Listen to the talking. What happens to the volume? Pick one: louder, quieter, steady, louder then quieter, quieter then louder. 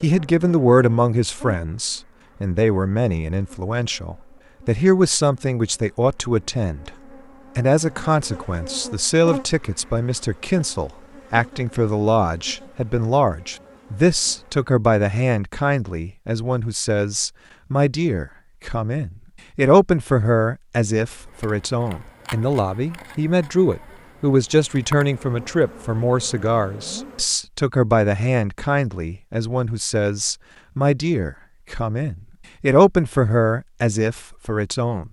steady.